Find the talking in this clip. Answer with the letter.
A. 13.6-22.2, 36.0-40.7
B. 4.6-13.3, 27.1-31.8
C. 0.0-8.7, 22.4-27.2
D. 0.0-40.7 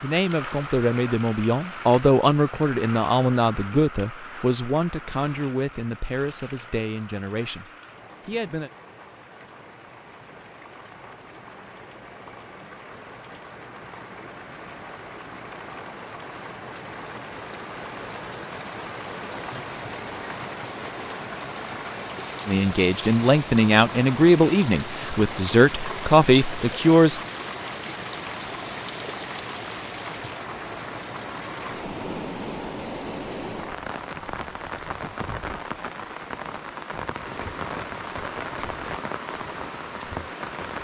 C.